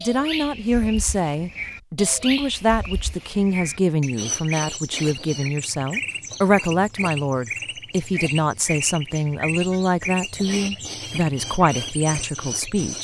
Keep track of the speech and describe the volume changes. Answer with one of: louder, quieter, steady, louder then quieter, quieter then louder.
steady.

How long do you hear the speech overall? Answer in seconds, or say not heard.
13 s.